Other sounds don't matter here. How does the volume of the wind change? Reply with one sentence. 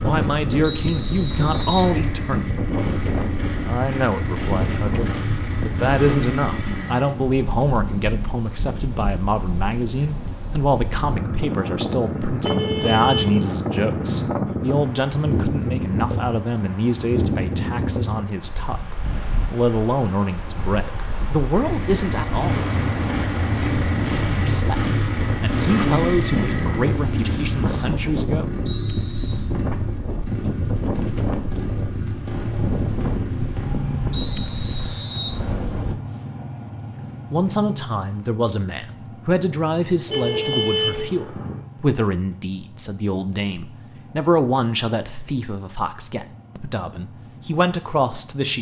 The loudness of the wind stays about the same.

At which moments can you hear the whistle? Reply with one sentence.
The whistle can be heard from 0.6 to 1.9 s, from 28.6 to 29.5 s and from 34.1 to 35.4 s.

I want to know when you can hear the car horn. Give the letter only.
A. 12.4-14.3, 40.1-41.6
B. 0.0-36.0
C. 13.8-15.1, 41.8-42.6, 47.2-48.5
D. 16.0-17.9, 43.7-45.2
A.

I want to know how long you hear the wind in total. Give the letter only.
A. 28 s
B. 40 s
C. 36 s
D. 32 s
C.